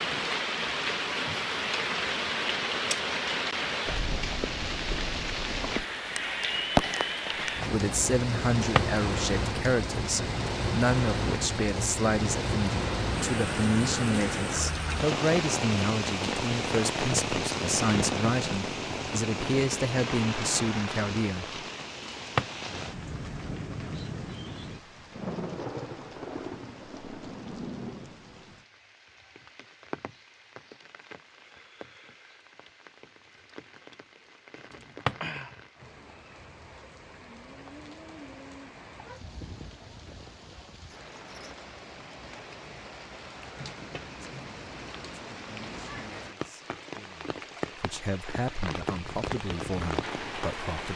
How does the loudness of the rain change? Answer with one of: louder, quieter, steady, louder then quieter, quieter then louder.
quieter then louder.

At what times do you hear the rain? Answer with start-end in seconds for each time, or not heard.
0.0-50.9.